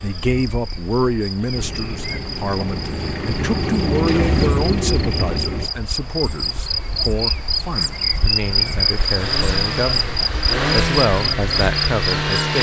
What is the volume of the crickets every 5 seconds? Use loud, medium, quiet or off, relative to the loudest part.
medium, loud, loud.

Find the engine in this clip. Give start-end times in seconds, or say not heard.
1.5-5.7, 9.1-12.5.